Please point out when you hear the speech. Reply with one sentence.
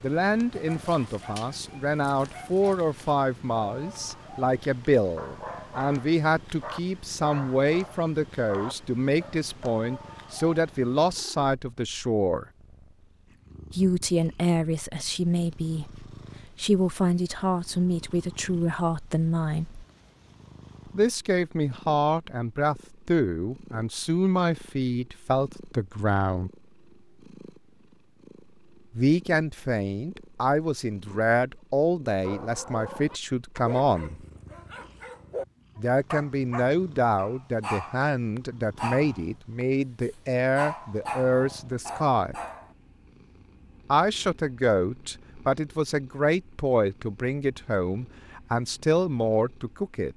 You can hear the speech from 0.0 to 12.4 s, from 13.7 to 19.9 s, from 20.9 to 26.5 s, from 28.9 to 34.2 s, from 35.8 to 42.4 s and from 43.9 to 50.1 s.